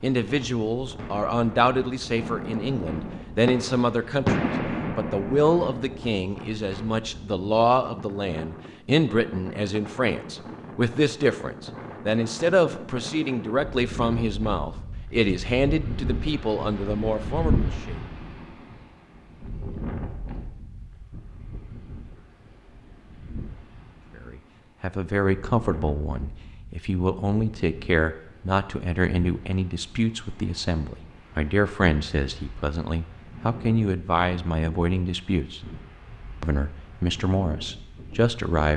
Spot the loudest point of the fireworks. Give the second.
4 s.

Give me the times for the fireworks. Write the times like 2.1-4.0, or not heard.
0.9-6.0.